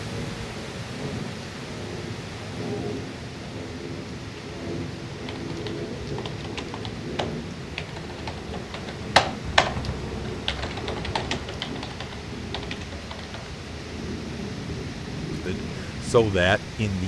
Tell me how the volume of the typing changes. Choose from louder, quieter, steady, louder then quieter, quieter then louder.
louder then quieter.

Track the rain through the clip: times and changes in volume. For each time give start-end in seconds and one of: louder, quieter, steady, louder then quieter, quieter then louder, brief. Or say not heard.
0.0-17.0 steady.